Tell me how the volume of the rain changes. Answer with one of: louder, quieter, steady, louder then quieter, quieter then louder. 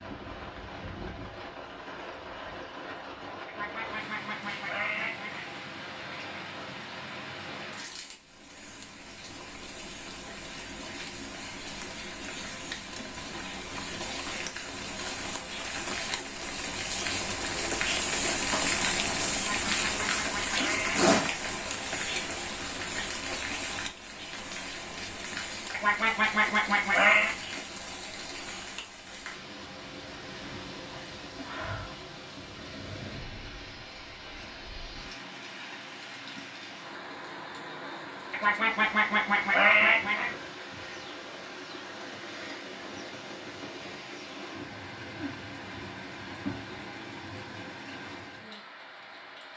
louder then quieter.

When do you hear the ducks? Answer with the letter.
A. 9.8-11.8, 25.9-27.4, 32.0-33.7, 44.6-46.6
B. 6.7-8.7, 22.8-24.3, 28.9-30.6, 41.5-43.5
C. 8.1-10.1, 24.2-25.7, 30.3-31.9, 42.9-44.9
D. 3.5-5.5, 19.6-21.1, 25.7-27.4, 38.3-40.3
D.